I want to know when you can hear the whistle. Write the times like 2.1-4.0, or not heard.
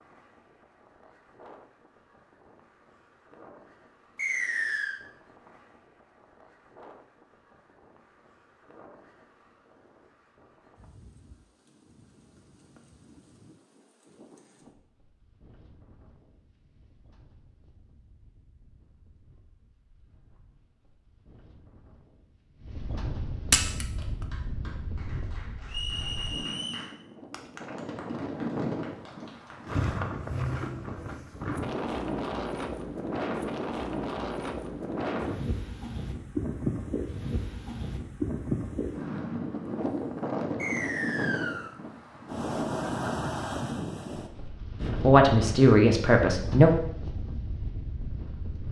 4.2-5.0, 25.6-26.9, 40.5-41.7.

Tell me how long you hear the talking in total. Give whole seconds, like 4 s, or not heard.
2 s.